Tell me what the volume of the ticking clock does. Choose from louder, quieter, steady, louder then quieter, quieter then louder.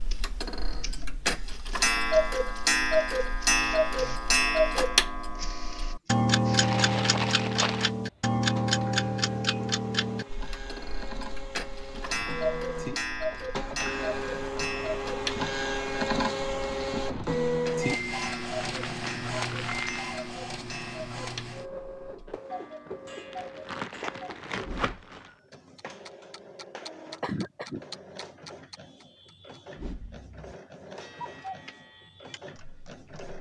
quieter.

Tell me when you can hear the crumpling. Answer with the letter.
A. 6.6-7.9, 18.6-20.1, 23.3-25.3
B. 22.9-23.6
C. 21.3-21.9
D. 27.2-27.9
A.